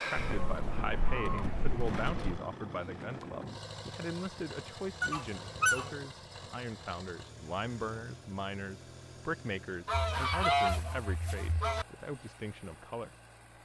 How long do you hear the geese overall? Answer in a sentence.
The geese can be heard for 5 seconds in total.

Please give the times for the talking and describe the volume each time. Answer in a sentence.
You can hear the talking from 0.0 to 13.1 s, at a steady volume.